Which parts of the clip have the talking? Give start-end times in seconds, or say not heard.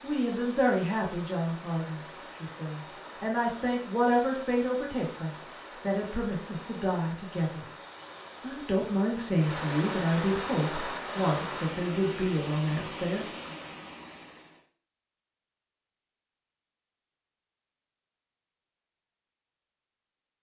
0.0-7.7, 8.4-13.2.